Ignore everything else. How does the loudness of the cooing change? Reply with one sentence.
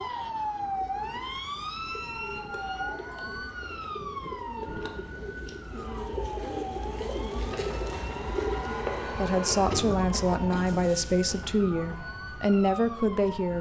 The volume of the cooing goes up.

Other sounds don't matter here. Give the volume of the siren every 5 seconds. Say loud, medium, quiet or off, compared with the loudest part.
loud, medium, medium.